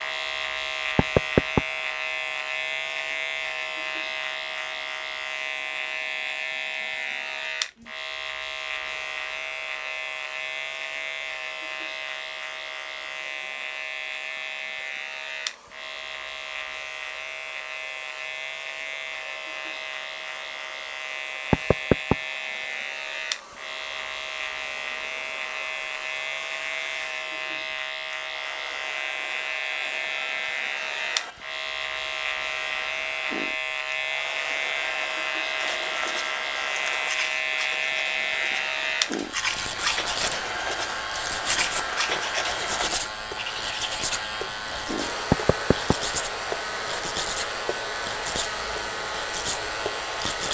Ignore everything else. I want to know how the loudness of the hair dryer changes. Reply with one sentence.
The volume of the hair dryer goes up.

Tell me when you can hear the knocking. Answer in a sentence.
The knocking can be heard from 0.9 to 1.6 s, from 21.5 to 22.1 s and from 45.3 to 46.0 s.